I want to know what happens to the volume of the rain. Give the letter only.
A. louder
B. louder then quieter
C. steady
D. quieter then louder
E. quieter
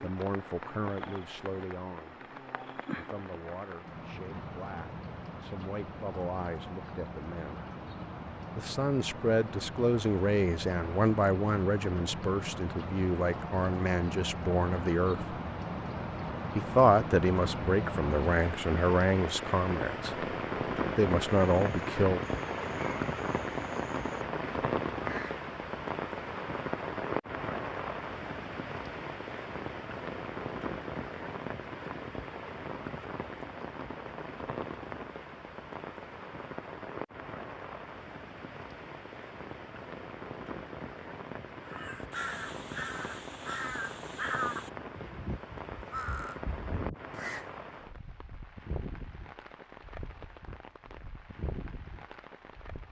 B.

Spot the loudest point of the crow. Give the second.
44 s.